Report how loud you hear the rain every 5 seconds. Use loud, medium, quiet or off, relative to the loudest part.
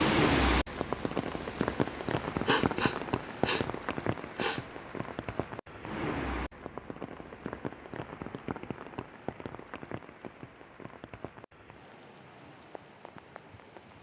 loud, medium, quiet.